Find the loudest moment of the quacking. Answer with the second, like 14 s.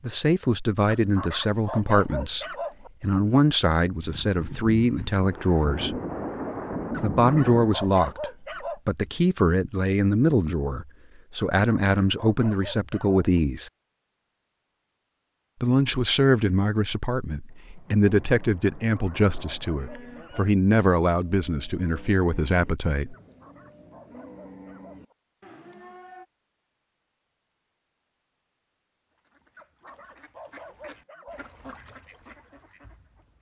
32 s.